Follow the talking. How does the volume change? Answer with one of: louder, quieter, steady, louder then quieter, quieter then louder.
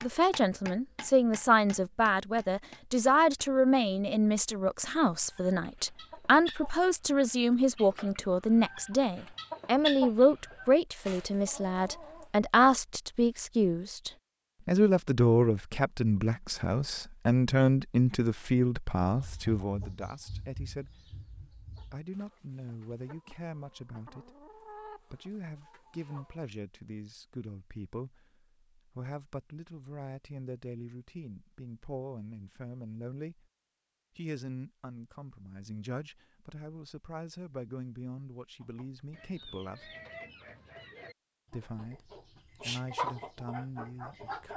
quieter.